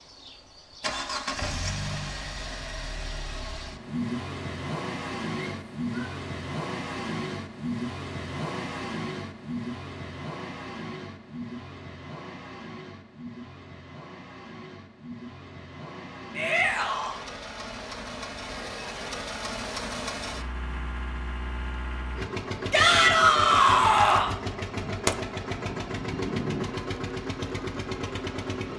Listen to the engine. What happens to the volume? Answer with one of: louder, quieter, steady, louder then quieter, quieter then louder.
quieter then louder.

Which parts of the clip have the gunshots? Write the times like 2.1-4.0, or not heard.
24.8-26.7.